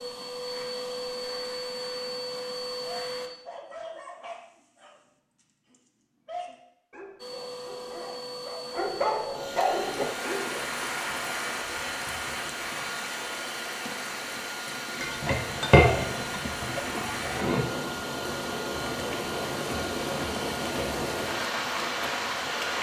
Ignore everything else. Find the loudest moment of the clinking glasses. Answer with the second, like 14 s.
16 s.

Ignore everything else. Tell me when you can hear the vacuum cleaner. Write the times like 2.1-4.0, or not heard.
0.0-3.3, 7.2-22.7.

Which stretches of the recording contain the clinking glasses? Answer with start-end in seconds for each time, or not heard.
15.0-17.7.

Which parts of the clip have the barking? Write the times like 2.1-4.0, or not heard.
2.9-10.4.